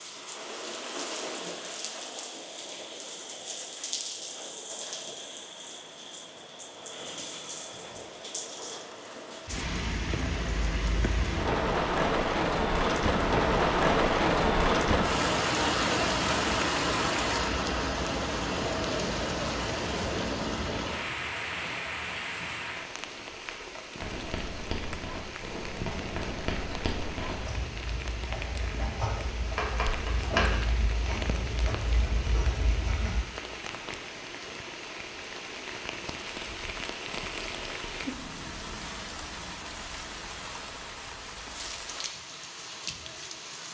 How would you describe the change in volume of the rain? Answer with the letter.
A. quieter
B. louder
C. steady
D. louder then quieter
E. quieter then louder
D.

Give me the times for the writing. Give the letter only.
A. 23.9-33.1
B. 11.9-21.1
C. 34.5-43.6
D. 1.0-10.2
A.